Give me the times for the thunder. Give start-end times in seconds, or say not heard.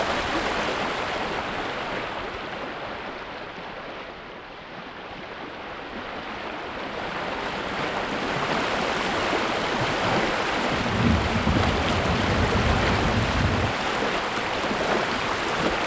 10.7-13.8.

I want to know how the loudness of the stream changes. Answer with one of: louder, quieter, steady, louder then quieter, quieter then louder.
quieter then louder.